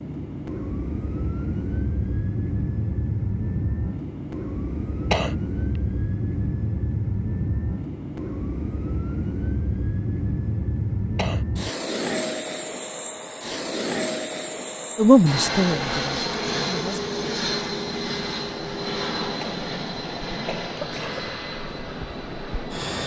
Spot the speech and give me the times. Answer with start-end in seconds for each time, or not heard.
14.9-17.0.